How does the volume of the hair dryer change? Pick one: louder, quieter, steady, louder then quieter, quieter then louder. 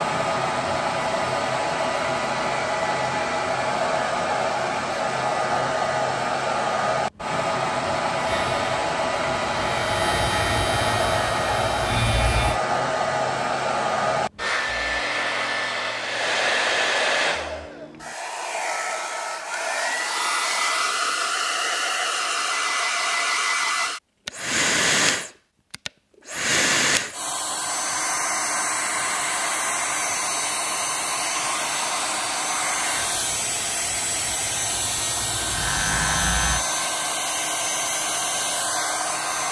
steady.